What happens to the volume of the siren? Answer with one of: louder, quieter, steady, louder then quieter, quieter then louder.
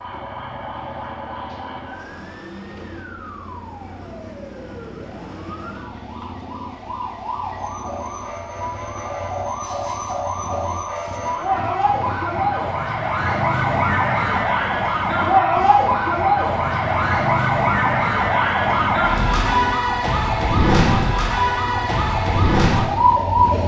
louder.